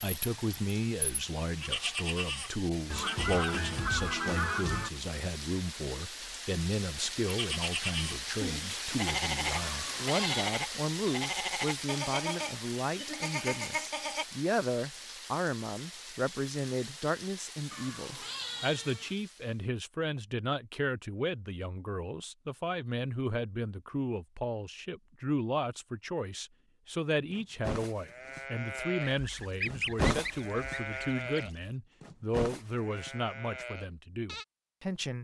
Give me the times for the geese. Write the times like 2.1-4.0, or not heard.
2.9-4.9, 29.0-31.7.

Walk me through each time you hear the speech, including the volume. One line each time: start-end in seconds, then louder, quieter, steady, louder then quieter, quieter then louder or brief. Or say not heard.
0.0-35.1 steady.